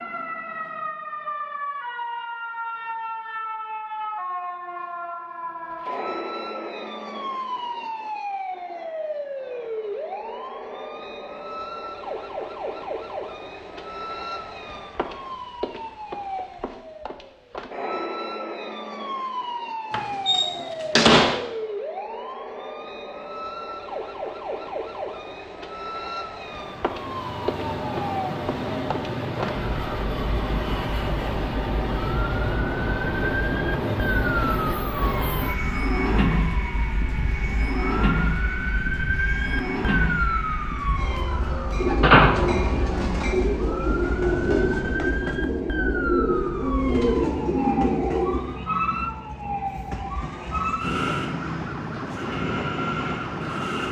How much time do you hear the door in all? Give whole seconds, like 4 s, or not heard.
2 s.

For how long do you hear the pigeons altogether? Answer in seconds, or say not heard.
7 s.